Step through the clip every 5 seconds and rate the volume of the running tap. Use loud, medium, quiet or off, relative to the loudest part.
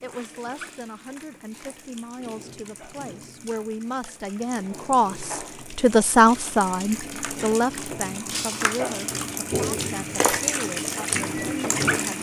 quiet, medium, loud.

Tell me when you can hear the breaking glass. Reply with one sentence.
You can hear the breaking glass from 0.6 to 1.0 s and from 8.3 to 8.8 s.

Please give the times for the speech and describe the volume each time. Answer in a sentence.
The speech can be heard from 0.0 to 12.1 s, getting louder then quieter.